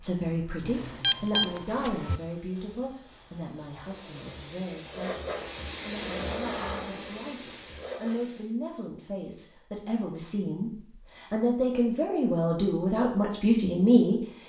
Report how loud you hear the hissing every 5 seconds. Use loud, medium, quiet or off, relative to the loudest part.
quiet, loud, off.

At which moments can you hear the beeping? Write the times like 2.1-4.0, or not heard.
0.6-2.2.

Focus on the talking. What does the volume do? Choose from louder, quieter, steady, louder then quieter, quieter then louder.
quieter then louder.